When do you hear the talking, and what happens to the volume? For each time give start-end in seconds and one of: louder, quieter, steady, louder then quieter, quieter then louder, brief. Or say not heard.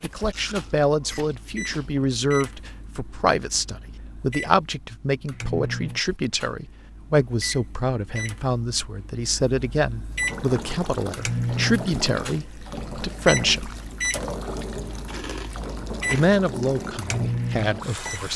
0.0-13.7 steady
16.1-18.3 brief.